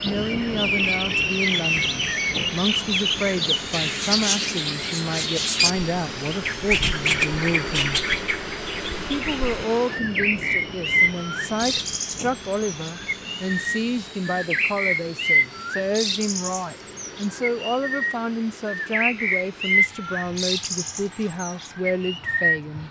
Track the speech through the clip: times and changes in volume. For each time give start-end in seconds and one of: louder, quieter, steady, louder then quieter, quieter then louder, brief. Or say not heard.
0.0-8.1 steady
9.1-22.8 steady.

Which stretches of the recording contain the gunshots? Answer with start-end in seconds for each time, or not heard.
not heard.